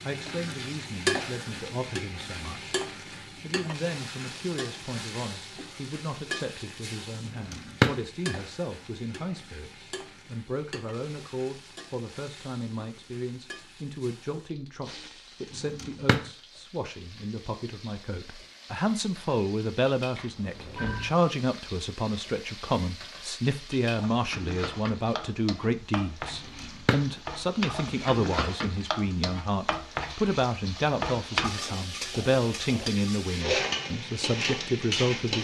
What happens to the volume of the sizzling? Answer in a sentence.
The volume of the sizzling goes down, then up.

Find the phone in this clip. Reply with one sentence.
The phone can be heard from 20.1 to 21.1 s.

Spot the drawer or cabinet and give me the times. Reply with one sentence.
You can hear the drawer or cabinet from 7.2 to 8.0 s, from 15.5 to 16.2 s and from 26.3 to 27.0 s.